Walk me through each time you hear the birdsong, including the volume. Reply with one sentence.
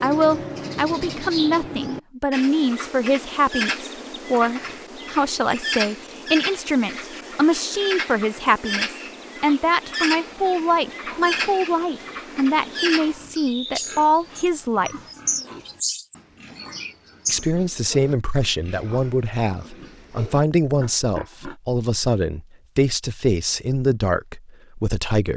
The birdsong can be heard from 0.0 to 17.5 s, at a steady volume.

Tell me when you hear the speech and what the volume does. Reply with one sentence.
The speech can be heard from 0.0 to 15.0 s, at a steady volume; and from 17.2 to 25.3 s, at a steady volume.